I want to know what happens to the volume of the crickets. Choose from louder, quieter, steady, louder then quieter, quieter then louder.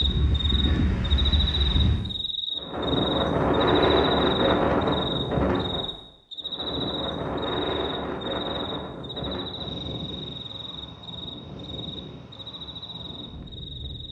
quieter.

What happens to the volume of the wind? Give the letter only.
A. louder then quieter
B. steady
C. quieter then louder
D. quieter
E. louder
A.